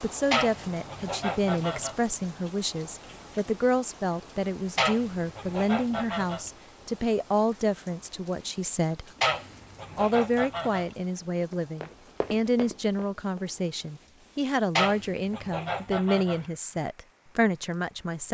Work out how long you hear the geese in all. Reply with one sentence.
The geese can be heard for 7 seconds in total.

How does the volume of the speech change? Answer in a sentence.
The volume of the speech stays about the same.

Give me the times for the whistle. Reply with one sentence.
You can't hear the whistle here.